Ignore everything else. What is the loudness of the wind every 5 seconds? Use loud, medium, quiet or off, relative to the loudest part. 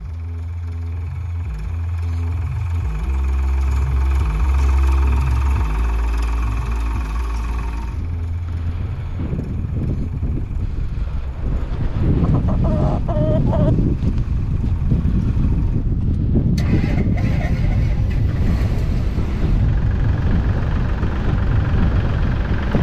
off, medium, loud, loud, loud.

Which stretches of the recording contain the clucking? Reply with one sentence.
The clucking can be heard from 12.2 to 13.7 s.